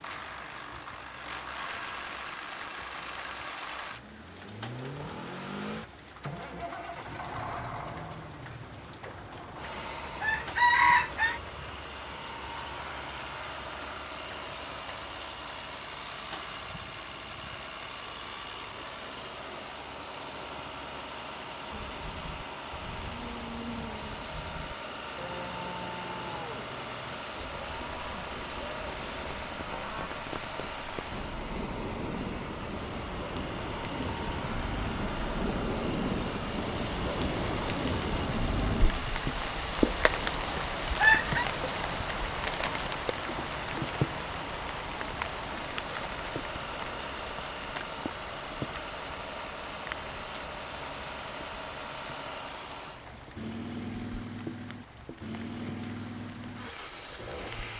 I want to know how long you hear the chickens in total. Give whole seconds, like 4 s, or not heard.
3 s.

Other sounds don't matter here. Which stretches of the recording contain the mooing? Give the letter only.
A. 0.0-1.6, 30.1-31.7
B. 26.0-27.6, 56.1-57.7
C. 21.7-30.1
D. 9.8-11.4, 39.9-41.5
C.